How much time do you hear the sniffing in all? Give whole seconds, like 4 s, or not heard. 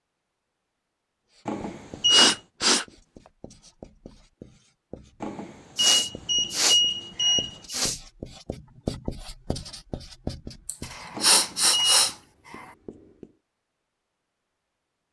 5 s.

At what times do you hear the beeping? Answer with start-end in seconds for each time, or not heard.
1.4-2.4, 5.2-7.8, 11.2-12.1.